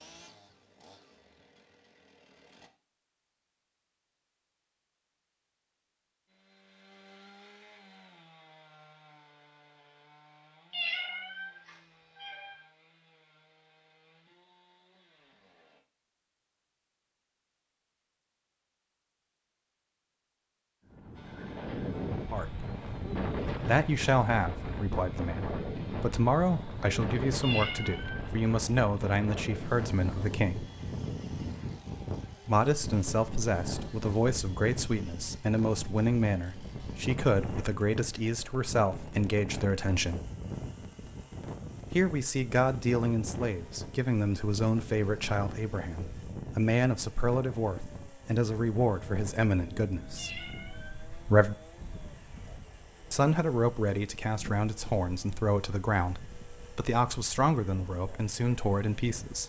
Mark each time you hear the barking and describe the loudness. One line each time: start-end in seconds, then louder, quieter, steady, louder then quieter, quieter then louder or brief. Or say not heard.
not heard.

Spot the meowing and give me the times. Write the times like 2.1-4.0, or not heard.
10.7-12.6, 27.4-28.2, 50.1-51.2.